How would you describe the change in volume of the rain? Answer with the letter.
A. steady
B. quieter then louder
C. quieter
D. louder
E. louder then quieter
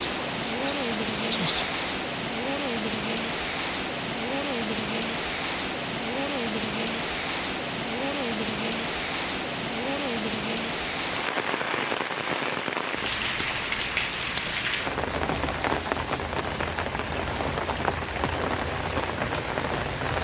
A.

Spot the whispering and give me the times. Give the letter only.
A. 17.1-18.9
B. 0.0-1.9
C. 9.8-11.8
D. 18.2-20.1
B.